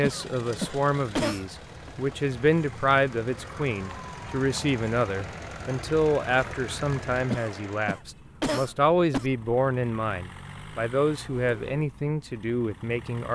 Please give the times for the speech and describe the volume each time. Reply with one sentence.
You can hear the speech from 0.0 to 13.2 s, at a steady volume.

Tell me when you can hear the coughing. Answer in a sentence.
The coughing can be heard from 0.0 to 1.9 s and from 7.3 to 9.3 s.